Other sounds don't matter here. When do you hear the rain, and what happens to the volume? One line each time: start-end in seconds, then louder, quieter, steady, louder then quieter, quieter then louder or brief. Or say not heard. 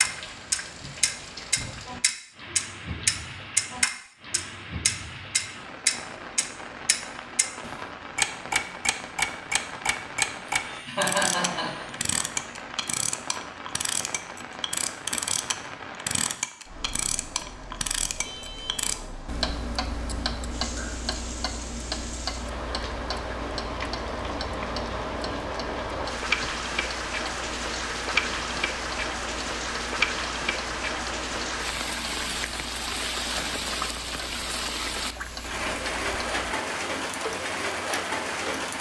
0.0-38.7 louder.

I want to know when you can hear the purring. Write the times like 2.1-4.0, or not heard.
not heard.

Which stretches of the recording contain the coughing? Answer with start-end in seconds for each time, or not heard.
10.6-11.9.